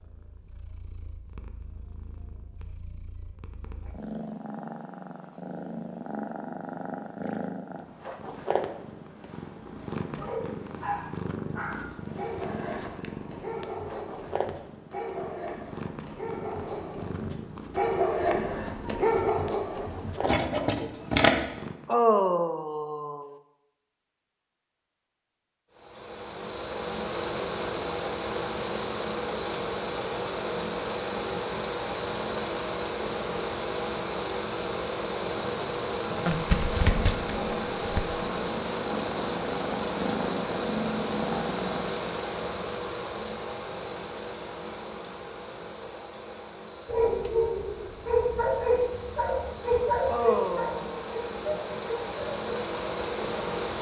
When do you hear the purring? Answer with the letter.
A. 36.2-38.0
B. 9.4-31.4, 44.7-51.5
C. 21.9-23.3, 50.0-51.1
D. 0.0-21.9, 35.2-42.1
D.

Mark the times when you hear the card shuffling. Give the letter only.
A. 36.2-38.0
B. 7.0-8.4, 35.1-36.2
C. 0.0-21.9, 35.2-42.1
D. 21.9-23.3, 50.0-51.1
A.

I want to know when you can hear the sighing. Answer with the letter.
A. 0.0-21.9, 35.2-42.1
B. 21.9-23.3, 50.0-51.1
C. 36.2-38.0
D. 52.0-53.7
B.